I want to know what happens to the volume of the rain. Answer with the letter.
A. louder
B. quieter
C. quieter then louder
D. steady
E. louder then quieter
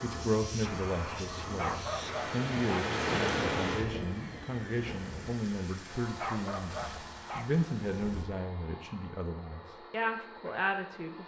E.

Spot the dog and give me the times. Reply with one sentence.
The dog can be heard from 1.6 to 3.0 s and from 6.2 to 7.5 s.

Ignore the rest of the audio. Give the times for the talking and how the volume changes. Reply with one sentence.
The talking can be heard from 0.0 to 11.2 s, at a steady volume.